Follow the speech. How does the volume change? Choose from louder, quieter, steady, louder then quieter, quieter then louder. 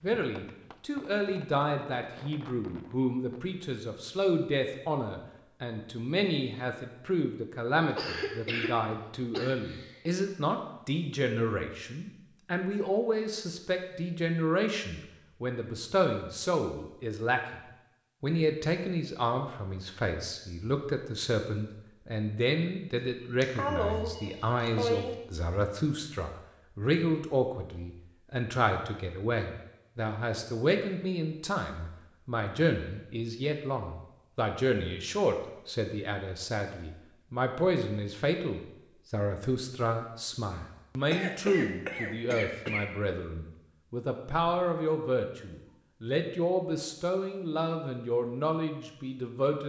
steady.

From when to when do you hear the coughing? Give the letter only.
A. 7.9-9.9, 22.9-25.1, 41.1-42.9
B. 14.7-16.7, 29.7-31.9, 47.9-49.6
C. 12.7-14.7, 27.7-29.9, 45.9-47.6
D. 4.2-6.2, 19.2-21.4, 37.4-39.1
A.